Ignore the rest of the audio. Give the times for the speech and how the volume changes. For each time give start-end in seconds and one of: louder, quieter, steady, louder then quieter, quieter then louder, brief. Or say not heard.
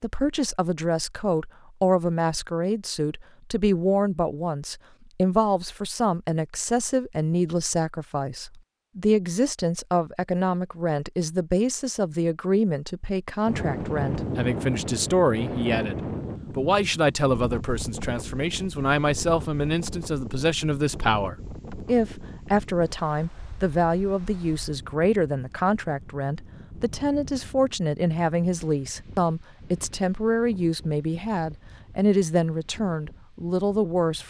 0.0-34.2 steady.